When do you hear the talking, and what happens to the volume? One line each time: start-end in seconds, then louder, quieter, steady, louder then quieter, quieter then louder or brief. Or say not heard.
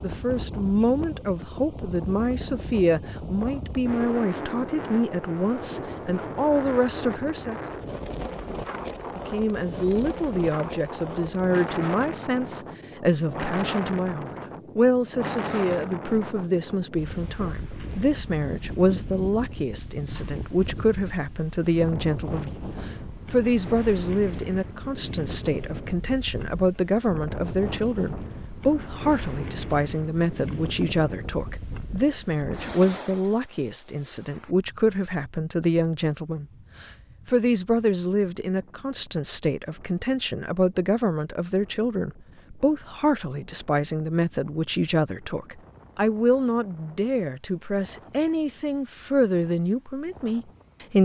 0.0-7.6 steady
9.2-50.9 steady.